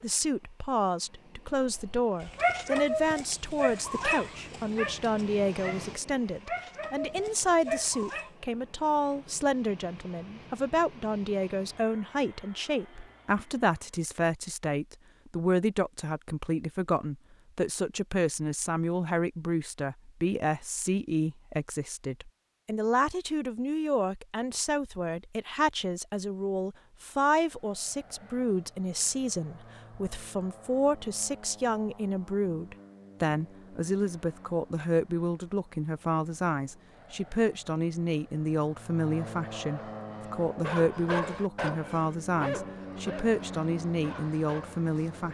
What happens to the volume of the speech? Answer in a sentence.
The volume of the speech stays about the same.